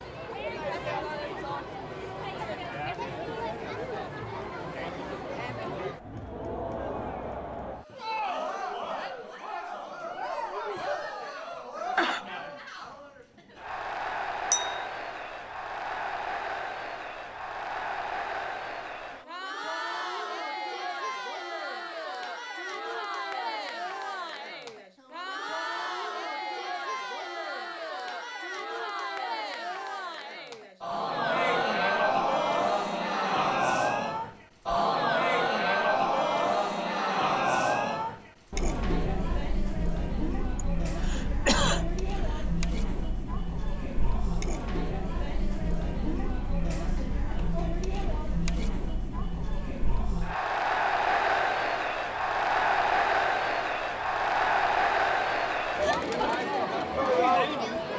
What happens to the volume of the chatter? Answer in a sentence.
The loudness of the chatter goes up.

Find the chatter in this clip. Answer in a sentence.
The chatter can be heard from 0.0 to 57.9 s.